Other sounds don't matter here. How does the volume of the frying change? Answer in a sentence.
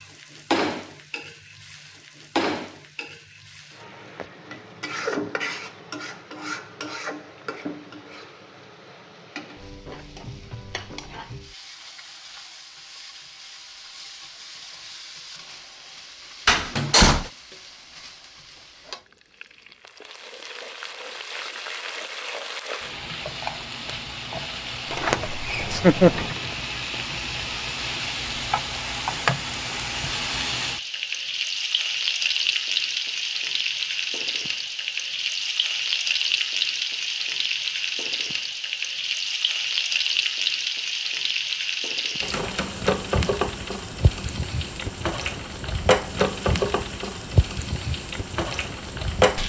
The loudness of the frying goes down, then up.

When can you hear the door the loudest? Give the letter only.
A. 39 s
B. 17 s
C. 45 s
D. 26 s
B.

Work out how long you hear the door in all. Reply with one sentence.
You can hear the door for 2 seconds altogether.